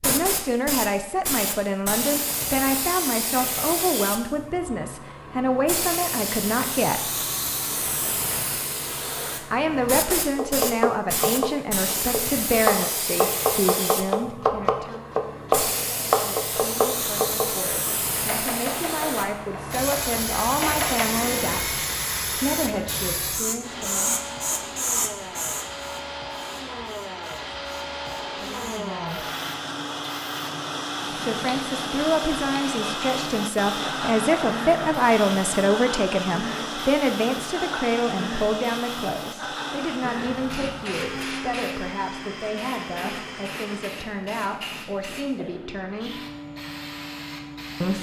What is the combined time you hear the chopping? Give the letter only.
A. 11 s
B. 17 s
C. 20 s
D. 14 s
A.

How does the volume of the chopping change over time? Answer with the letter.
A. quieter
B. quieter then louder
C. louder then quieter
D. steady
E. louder
A.